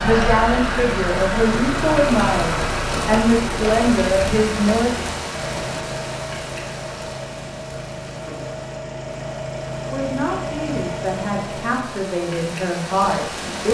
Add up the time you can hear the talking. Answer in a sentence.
You can hear the talking for 9 seconds altogether.